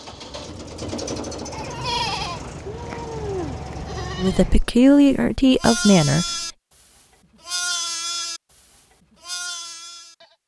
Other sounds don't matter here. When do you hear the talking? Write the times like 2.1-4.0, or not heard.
4.2-6.3.